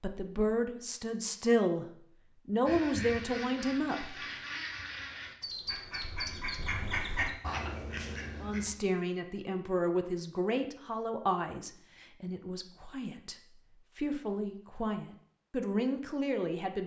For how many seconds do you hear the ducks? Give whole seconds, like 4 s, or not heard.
6 s.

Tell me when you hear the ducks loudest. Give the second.
7 s.